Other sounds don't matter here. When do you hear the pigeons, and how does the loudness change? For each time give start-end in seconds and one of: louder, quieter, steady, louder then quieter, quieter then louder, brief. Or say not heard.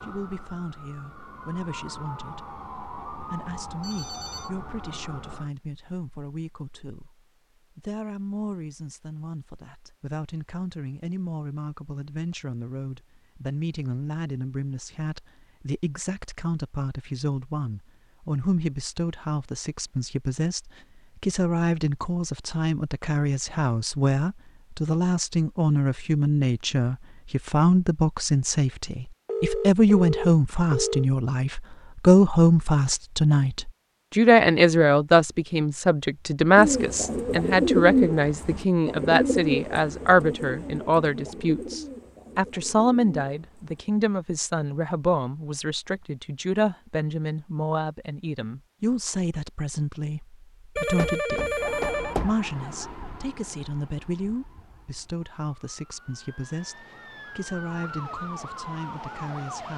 36.5-43.9 quieter.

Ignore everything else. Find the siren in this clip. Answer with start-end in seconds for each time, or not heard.
0.0-5.5, 51.5-59.7.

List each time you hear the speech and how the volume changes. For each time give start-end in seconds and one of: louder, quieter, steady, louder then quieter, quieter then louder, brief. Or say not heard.
0.0-59.7 louder then quieter.